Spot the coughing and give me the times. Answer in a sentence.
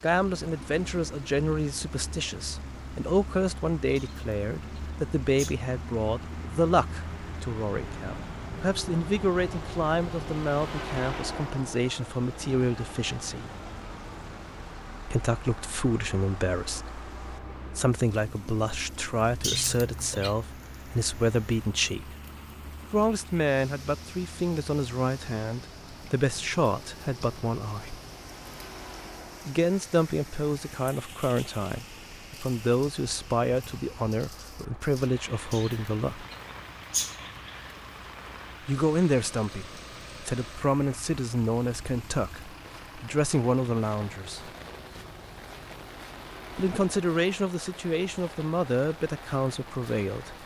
The coughing can be heard from 4.0 to 5.5 s, from 19.4 to 20.4 s and from 35.5 to 37.5 s.